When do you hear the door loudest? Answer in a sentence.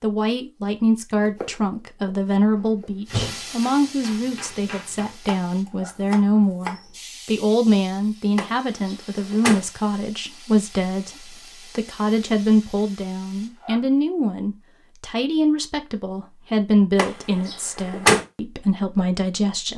The volume of the door peaks at 18 seconds.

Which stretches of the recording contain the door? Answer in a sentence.
The door can be heard from 2.6 to 3.4 s, from 8.3 to 9.6 s and from 16.9 to 18.2 s.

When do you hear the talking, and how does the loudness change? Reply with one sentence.
The talking can be heard from 0.0 to 19.7 s, at a steady volume.